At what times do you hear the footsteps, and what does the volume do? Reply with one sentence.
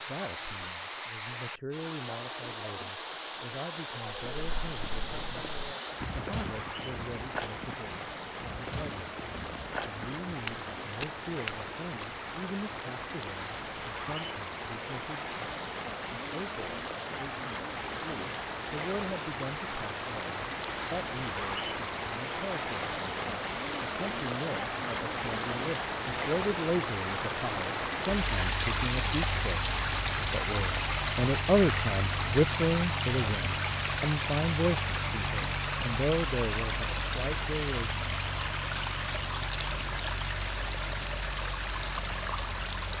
The footsteps can be heard from 4.0 to 12.1 s, getting louder.